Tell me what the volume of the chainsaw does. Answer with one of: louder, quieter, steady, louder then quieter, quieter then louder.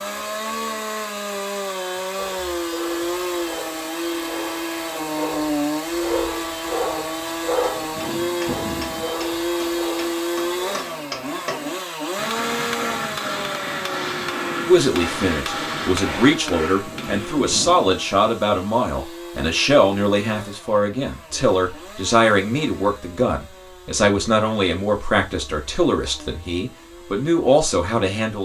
quieter.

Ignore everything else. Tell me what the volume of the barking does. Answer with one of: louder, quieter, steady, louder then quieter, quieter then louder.
louder then quieter.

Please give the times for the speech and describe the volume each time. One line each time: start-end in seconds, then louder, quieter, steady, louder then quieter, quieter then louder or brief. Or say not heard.
14.7-28.4 steady.